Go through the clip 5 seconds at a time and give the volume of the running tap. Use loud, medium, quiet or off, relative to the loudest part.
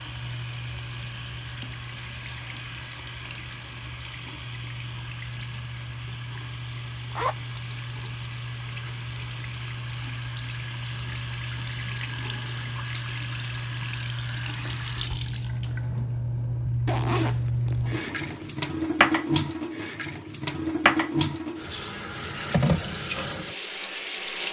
medium, medium, medium, loud, loud.